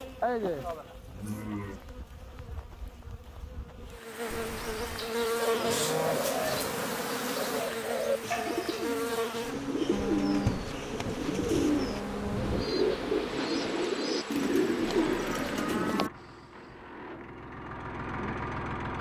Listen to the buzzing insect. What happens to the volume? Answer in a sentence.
The volume of the buzzing insect goes up, then down.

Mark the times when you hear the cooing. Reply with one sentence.
You can hear the cooing from 5.1 to 16.1 s.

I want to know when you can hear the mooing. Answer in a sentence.
You can hear the mooing from 0.2 to 1.8 s, from 5.5 to 6.9 s, from 9.9 to 12.7 s and from 14.5 to 16.1 s.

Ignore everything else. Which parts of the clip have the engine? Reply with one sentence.
The engine can be heard from 14.8 to 18.9 s.